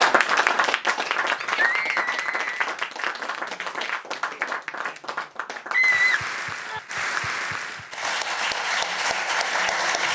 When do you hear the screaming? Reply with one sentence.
The screaming can be heard from 1.4 to 2.5 s and from 5.7 to 6.8 s.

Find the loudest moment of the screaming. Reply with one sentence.
The volume of the screaming peaks at 6 seconds.